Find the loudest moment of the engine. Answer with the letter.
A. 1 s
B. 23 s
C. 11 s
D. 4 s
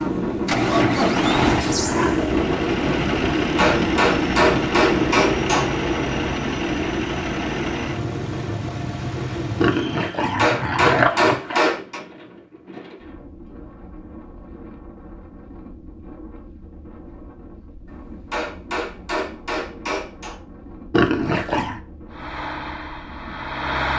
A.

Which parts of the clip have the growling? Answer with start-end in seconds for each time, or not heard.
0.8-2.2, 9.6-11.8, 20.9-21.8.